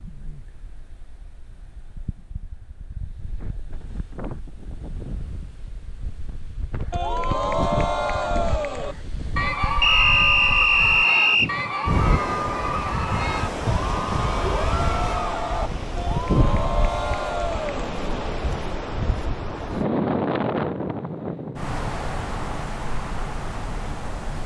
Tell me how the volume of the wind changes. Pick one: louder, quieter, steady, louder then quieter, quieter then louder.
louder.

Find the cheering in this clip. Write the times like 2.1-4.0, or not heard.
6.9-17.9.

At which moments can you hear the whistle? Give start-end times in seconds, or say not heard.
9.8-11.5.